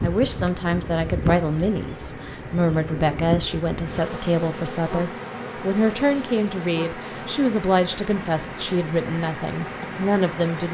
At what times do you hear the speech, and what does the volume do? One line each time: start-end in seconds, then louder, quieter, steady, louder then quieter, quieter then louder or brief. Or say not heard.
0.0-10.6 steady.